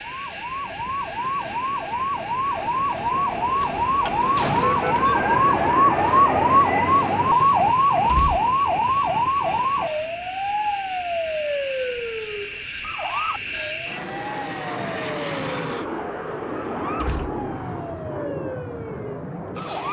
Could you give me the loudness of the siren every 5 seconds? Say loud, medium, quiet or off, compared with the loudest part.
medium, loud, medium, quiet.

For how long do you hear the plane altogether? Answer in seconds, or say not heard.
20 s.